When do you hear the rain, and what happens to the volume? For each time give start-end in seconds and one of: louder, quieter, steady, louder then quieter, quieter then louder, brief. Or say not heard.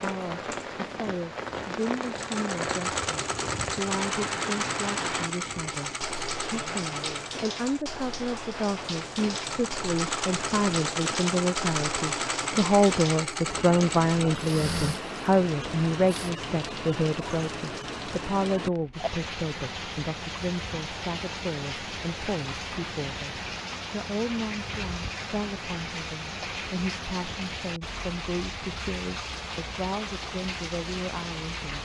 0.0-31.8 steady.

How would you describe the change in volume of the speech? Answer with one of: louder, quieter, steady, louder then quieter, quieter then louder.
louder then quieter.